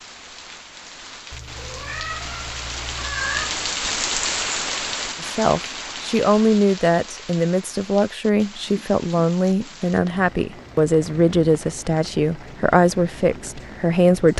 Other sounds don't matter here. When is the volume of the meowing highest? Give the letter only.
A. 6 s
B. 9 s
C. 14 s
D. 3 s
D.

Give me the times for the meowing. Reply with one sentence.
The meowing can be heard from 1.3 to 3.5 s.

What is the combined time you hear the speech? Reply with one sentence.
The speech can be heard for 9 seconds in total.